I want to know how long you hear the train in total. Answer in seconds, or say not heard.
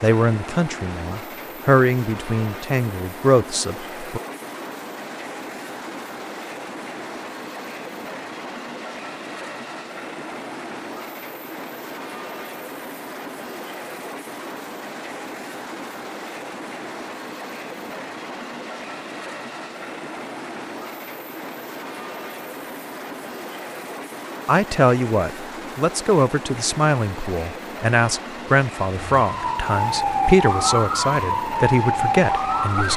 33 s.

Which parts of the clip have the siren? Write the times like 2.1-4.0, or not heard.
29.1-32.9.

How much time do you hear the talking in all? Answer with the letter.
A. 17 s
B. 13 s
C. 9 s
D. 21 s
B.